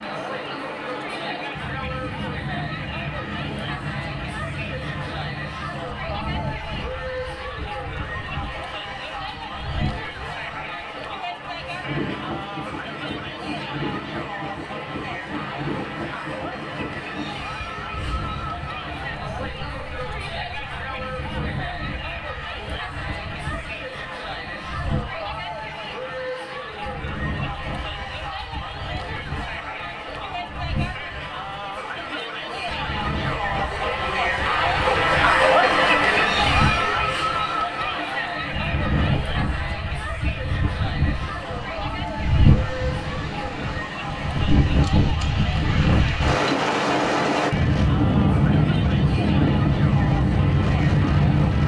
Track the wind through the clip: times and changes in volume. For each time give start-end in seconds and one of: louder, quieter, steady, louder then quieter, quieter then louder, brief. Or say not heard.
0.0-51.6 louder.